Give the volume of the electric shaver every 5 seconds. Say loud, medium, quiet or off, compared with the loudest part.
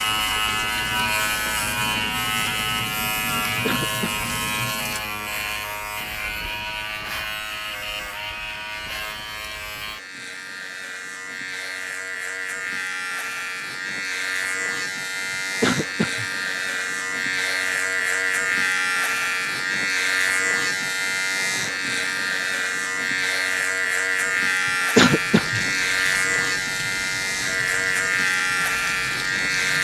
loud, medium, medium, loud, loud, loud.